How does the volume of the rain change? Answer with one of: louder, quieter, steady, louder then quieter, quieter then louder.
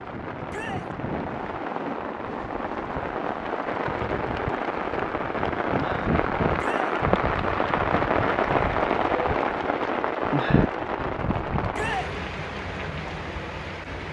louder then quieter.